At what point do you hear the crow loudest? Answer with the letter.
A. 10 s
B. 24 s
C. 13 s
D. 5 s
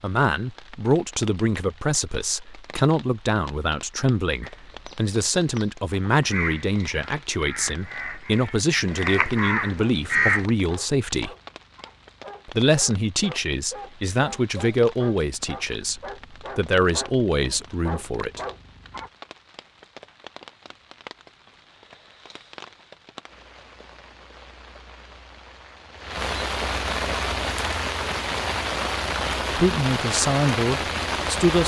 A.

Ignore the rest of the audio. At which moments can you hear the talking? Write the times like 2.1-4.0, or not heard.
0.0-11.3, 12.4-18.4, 29.6-31.6.